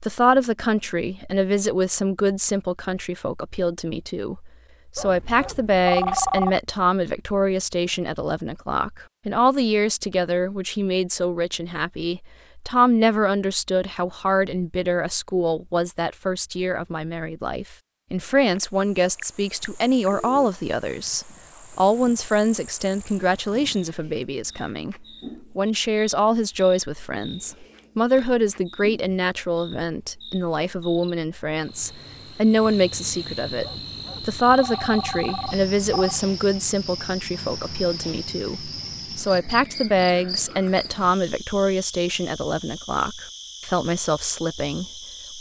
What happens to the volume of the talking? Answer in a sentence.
The volume of the talking stays about the same.